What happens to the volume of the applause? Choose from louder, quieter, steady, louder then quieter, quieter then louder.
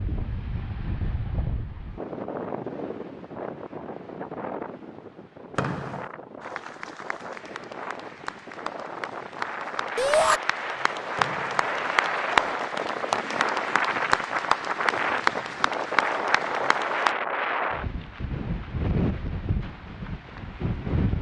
louder.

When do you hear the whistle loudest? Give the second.
6 s.